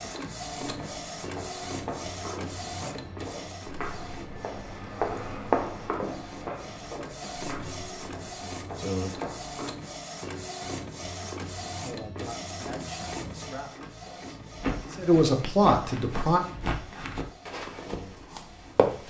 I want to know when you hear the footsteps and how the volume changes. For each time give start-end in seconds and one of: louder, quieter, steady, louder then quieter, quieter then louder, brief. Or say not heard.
0.7-9.7 louder then quieter
14.5-19.0 louder then quieter.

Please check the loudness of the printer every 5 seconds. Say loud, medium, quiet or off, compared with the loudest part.
loud, loud, loud, medium.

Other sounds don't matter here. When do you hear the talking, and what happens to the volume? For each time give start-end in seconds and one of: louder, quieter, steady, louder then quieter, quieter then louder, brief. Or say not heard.
11.8-16.4 quieter then louder.